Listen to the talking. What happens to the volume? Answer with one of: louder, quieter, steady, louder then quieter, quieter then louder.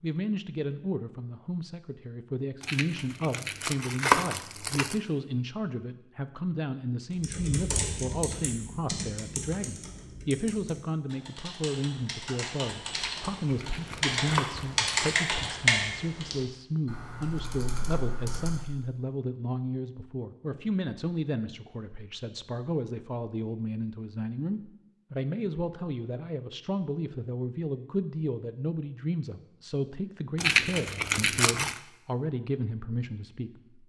steady.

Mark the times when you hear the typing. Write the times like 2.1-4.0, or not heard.
7.1-18.6.